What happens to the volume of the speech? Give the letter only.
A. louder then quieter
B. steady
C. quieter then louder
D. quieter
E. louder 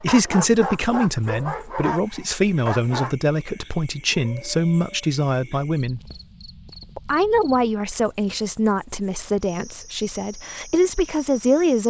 B.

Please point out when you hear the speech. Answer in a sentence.
You can hear the speech from 0.0 to 6.0 s and from 7.0 to 11.8 s.